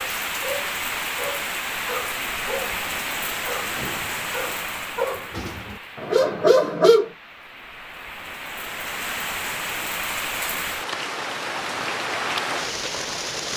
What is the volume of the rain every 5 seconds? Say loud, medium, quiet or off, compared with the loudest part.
loud, medium, loud.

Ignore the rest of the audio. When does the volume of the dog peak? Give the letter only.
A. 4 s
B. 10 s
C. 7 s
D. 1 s
C.